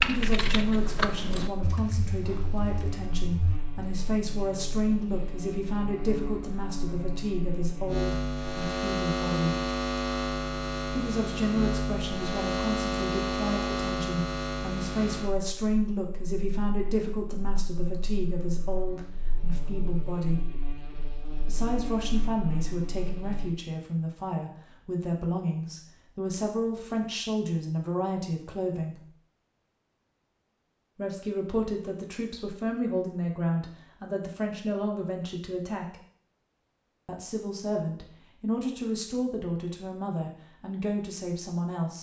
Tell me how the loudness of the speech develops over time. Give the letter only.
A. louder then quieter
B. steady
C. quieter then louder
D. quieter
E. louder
B.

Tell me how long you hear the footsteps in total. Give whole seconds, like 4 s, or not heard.
not heard.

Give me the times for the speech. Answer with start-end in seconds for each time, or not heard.
0.0-9.7, 10.8-20.6, 21.4-29.1, 30.9-36.0, 37.0-41.9.